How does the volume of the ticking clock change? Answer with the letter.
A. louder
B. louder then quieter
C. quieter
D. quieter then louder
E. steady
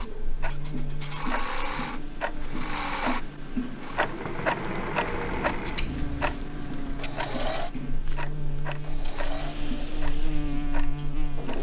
B.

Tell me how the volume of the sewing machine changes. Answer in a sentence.
The volume of the sewing machine goes down.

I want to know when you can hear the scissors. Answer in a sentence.
The scissors can be heard from 5.3 to 7.1 s.